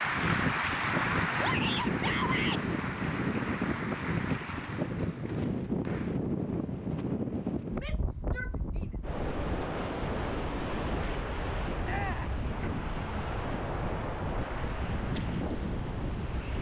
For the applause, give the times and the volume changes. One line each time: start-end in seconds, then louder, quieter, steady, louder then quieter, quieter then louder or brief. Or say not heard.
0.0-6.2 quieter.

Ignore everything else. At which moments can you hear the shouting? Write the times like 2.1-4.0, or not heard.
1.4-2.6, 7.8-8.9, 11.8-12.3.